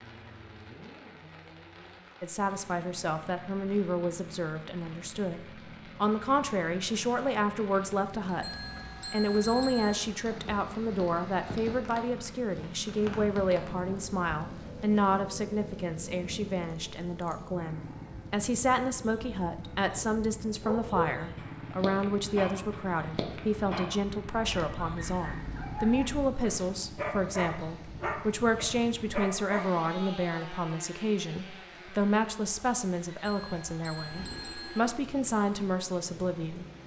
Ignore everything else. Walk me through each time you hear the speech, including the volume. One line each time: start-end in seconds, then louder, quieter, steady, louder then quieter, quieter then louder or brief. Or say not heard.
2.2-36.6 steady.